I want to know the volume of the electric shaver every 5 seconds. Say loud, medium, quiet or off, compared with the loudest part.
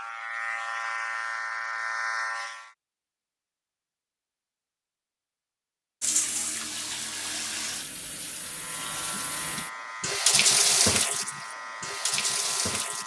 loud, medium, medium.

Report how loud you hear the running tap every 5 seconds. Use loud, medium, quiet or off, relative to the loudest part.
off, medium, loud.